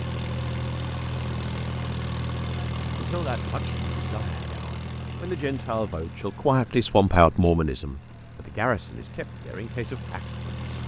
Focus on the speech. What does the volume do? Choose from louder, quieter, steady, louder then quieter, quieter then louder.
louder then quieter.